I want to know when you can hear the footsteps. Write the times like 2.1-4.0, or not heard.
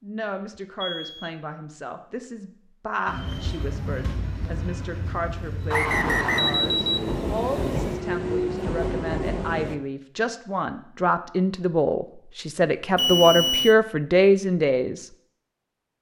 not heard.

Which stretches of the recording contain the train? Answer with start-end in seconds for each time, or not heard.
3.0-9.8.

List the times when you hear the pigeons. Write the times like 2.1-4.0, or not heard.
not heard.